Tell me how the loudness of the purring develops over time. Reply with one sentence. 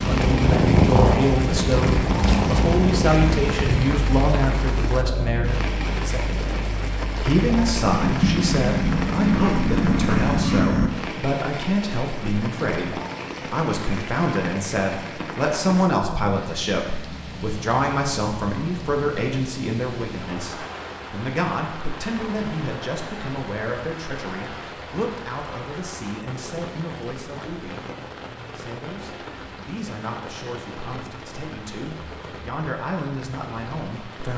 The loudness of the purring goes down, then up.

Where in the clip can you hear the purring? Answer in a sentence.
You can hear the purring from 0.0 to 10.9 s.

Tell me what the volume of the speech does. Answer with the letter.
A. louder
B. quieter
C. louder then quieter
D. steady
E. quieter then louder
B.